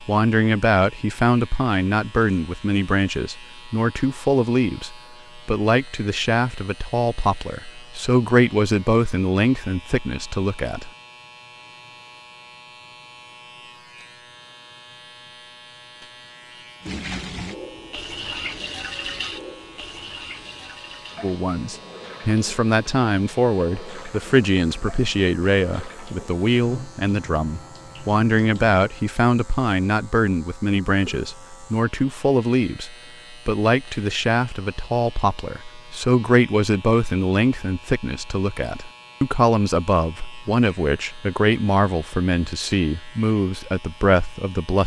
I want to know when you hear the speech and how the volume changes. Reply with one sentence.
You can hear the speech from 0.0 to 10.9 s, at a steady volume; and from 21.2 to 44.8 s, at a steady volume.